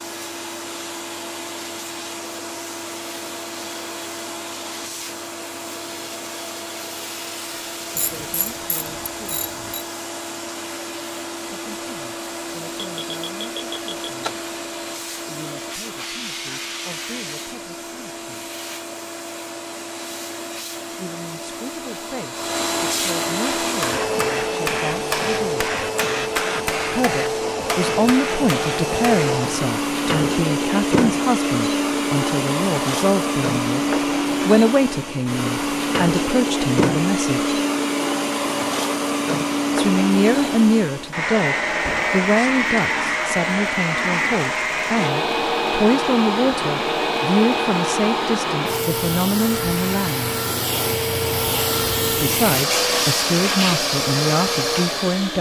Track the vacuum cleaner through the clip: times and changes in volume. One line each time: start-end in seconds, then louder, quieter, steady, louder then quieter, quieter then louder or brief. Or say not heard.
0.0-55.3 louder.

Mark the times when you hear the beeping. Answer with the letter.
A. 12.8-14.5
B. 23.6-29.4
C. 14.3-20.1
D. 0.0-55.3
A.